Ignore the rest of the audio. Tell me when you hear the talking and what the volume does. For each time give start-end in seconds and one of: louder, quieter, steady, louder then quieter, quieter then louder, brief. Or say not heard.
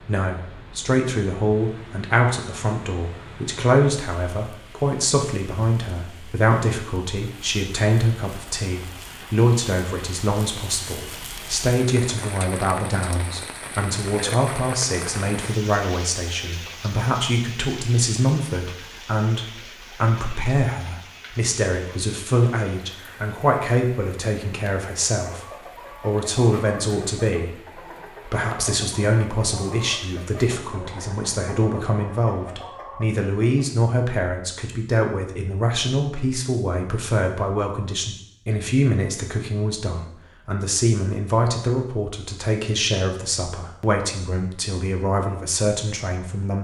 0.0-46.6 steady.